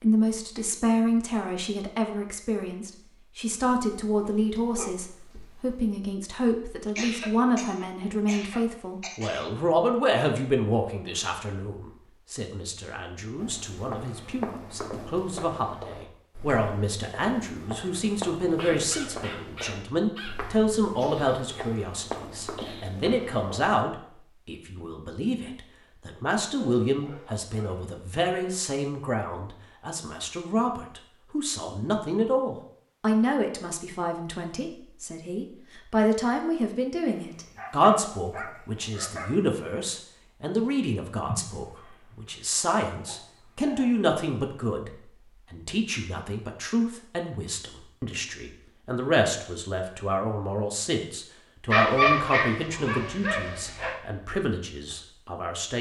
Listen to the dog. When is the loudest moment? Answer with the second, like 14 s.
52 s.